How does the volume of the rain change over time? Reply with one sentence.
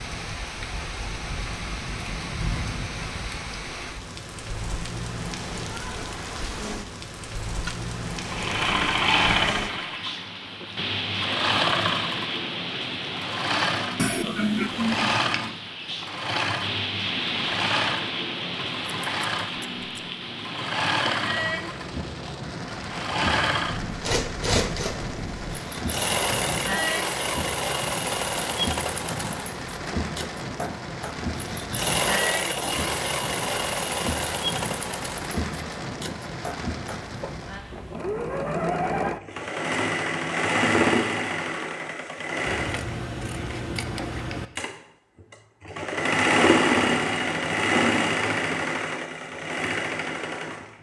The loudness of the rain stays about the same.